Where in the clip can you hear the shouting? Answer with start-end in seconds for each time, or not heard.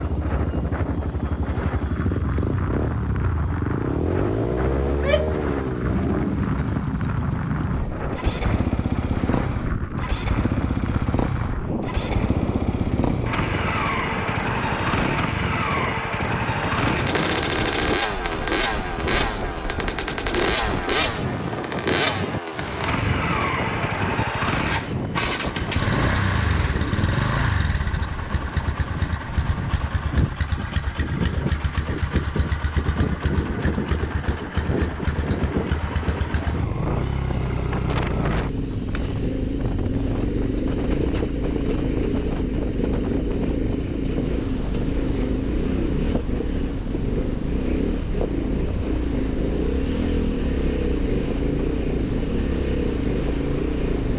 4.8-5.5.